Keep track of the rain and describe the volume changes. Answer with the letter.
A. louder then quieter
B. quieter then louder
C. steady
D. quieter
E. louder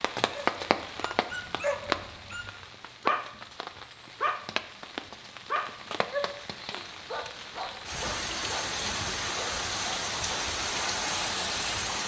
B.